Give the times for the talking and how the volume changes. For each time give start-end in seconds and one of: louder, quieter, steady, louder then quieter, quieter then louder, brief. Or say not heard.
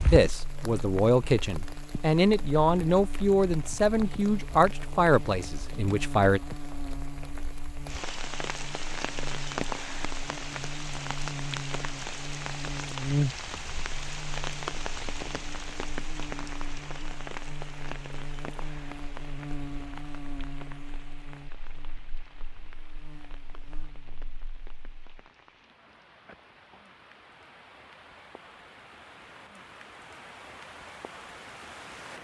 0.0-6.4 steady.